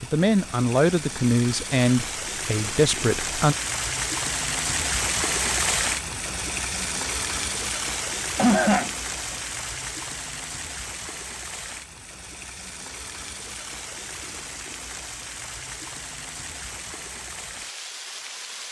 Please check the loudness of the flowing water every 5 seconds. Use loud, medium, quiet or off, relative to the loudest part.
loud, loud, medium, medium.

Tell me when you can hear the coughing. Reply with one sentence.
You can hear the coughing from 8.3 to 9.3 s.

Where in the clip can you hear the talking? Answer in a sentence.
You can hear the talking from 0.0 to 3.5 s.